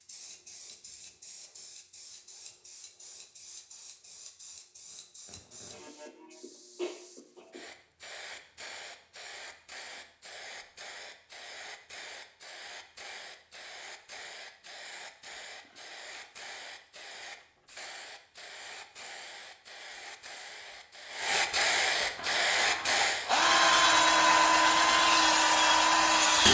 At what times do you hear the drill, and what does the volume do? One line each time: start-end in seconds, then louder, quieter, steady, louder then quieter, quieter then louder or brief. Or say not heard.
22.1-26.4 louder.